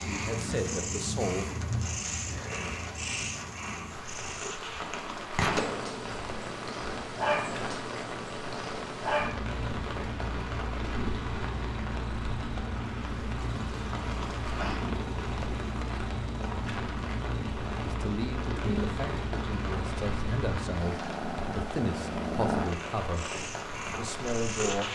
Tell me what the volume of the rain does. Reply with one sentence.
The loudness of the rain stays about the same.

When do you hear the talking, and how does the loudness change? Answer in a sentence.
The talking can be heard briefly from 0.1 to 1.6 s; and from 17.9 to 24.9 s, at a steady volume.